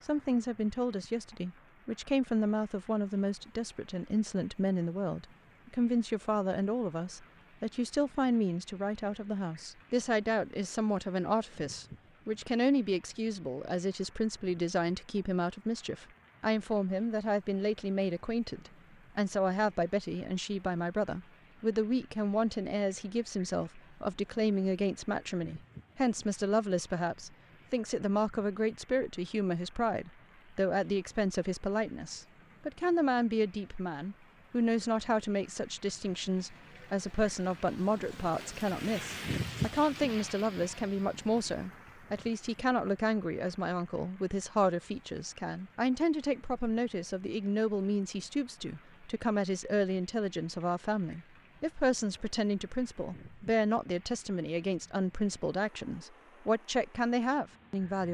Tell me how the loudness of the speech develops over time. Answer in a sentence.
The loudness of the speech stays about the same.